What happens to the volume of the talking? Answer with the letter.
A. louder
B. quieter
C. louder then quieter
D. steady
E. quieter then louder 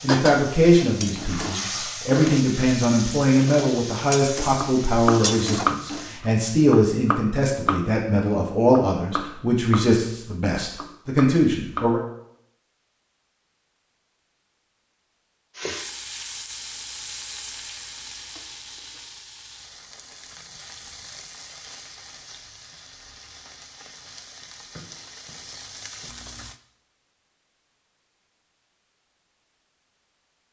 D.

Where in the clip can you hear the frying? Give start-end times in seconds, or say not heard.
0.0-6.2, 15.6-26.6.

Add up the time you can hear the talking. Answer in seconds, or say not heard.
12 s.